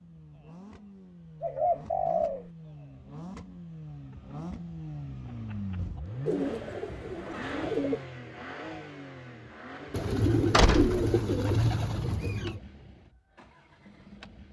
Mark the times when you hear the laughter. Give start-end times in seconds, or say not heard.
not heard.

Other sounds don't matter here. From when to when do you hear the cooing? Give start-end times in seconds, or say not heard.
1.4-2.5, 6.2-8.1, 9.9-12.6.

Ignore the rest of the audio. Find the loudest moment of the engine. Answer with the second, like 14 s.
6 s.